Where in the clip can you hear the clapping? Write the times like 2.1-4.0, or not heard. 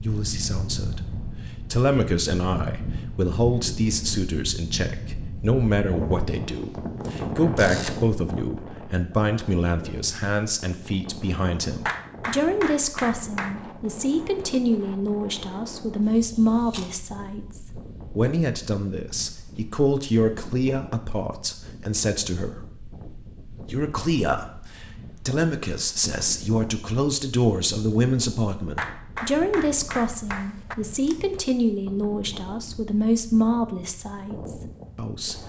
11.8-13.6, 28.8-30.8.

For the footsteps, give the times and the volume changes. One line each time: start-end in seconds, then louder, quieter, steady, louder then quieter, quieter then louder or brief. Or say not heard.
not heard.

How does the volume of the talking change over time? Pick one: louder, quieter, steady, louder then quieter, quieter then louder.
steady.